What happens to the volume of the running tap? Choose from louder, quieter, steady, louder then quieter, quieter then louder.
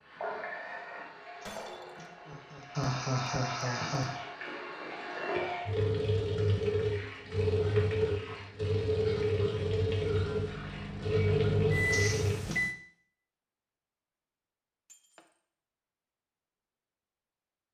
louder.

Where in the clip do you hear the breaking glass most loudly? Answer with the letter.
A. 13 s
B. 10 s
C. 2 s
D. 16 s
C.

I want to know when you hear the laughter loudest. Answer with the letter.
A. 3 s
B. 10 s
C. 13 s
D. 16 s
A.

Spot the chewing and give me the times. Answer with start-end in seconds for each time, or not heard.
not heard.